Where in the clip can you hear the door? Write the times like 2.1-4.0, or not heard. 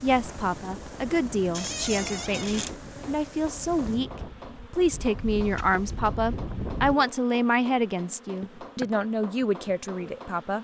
1.5-2.8.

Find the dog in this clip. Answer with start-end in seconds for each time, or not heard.
not heard.